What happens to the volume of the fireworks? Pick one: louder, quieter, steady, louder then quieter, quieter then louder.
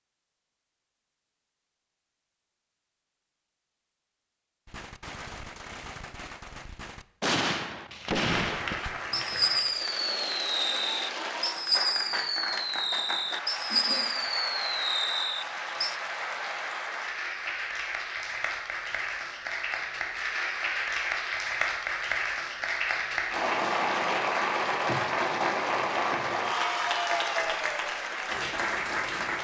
louder.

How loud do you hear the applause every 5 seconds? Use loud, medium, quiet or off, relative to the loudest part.
off, medium, medium, medium, loud, loud.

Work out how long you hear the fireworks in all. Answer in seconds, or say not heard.
11 s.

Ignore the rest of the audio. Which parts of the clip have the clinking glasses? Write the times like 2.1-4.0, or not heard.
not heard.